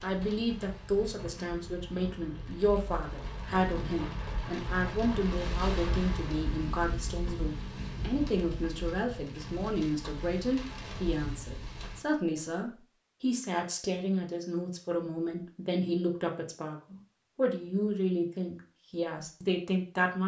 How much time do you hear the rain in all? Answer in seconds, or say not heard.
12 s.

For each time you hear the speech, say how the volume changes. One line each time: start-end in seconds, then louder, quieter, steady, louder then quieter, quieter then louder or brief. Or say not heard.
0.0-20.2 steady.